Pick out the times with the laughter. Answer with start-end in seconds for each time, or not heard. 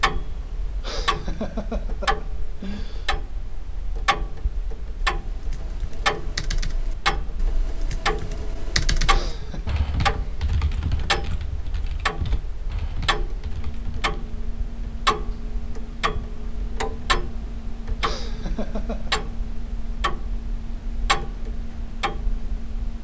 0.8-3.1, 9.1-9.8, 18.0-19.2.